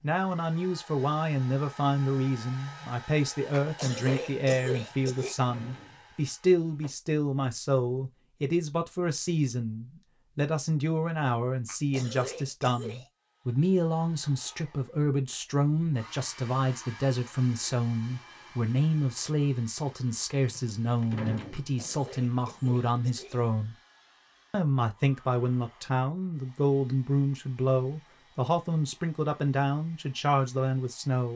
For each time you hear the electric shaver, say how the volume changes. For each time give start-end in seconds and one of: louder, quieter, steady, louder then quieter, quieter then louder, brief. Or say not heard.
not heard.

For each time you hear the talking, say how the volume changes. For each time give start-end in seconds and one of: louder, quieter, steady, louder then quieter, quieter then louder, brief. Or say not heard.
0.0-23.8 steady
24.5-31.3 steady.